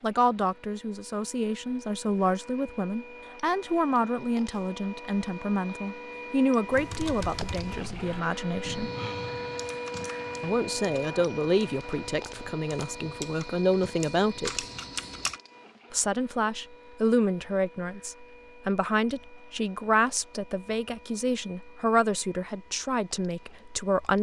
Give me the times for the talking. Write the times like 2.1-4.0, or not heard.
0.0-8.9, 10.4-14.7, 15.9-24.1.